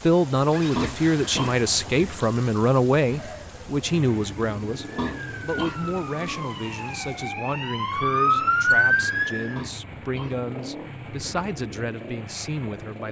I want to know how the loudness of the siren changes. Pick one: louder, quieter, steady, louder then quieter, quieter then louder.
louder.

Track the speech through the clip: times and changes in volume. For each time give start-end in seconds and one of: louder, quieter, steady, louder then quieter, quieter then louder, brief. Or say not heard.
0.0-13.0 quieter.